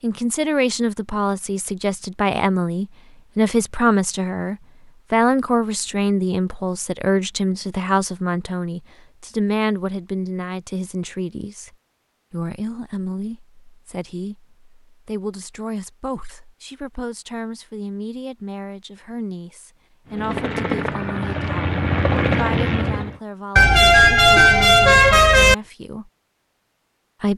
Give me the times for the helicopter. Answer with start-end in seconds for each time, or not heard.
20.1-23.2.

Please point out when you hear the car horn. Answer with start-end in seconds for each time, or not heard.
23.6-25.6.